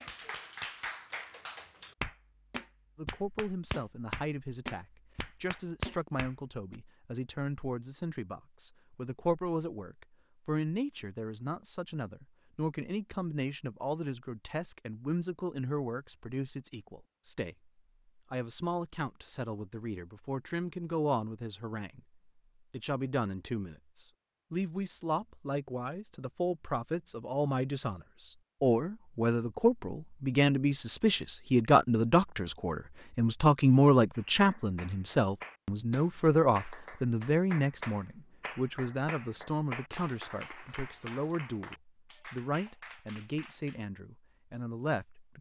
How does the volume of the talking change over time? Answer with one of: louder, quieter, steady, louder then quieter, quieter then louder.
louder then quieter.